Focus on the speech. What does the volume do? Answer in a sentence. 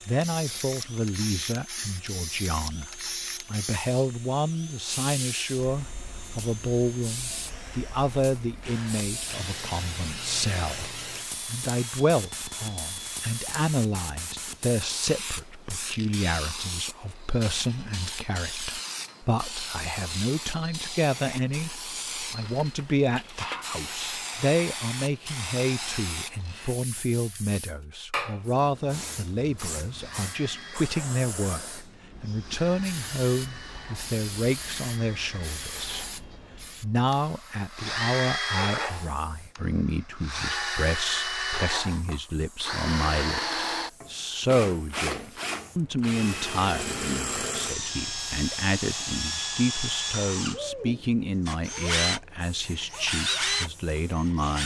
The loudness of the speech stays about the same.